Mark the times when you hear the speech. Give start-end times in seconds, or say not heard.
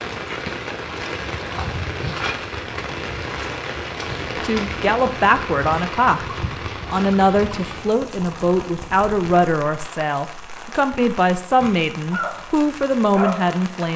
4.3-13.9.